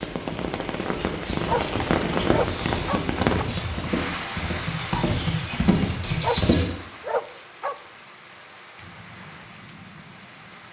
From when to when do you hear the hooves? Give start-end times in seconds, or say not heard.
1.2-6.7.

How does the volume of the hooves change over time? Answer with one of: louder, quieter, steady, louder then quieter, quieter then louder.
louder.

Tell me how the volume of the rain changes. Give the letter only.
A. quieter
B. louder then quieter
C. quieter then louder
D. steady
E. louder
A.